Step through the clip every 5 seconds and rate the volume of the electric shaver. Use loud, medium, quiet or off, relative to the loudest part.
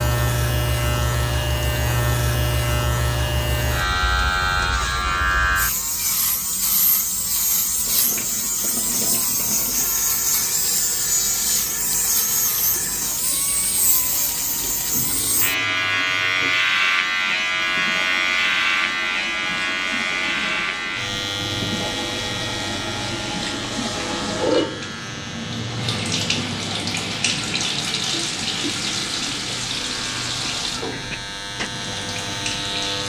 loud, loud, loud, loud, medium, quiet, medium.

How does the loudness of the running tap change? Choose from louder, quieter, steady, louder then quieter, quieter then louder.
louder.